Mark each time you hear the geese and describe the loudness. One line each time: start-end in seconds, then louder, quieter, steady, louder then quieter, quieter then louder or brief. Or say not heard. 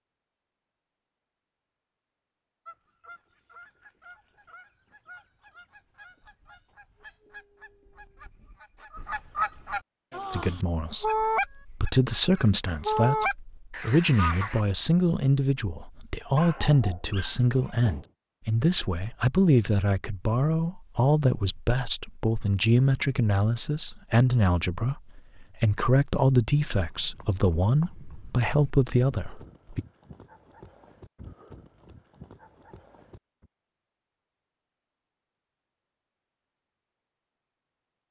2.6-14.6 louder.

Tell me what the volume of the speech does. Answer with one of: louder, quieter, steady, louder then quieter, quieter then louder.
steady.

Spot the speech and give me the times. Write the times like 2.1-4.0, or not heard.
10.3-29.9.